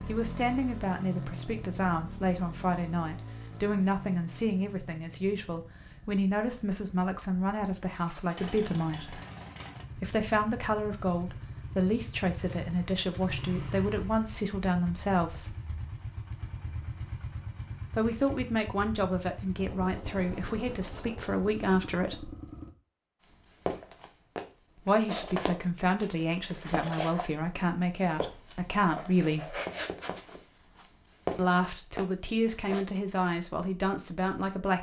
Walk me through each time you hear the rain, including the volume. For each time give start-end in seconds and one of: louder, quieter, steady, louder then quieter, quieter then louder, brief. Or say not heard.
not heard.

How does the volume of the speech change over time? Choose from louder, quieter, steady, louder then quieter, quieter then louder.
steady.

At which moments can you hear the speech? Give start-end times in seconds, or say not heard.
0.1-9.2, 9.9-15.6, 17.9-22.3, 24.8-29.6, 31.4-34.7.